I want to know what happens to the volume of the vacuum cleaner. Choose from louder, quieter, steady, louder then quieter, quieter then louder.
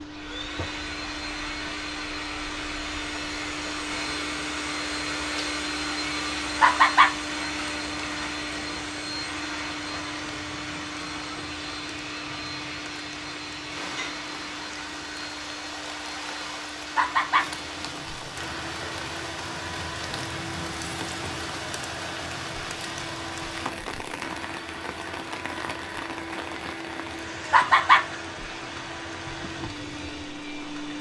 quieter.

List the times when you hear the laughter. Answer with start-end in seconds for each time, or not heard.
6.6-7.1, 16.9-17.4, 27.5-28.1.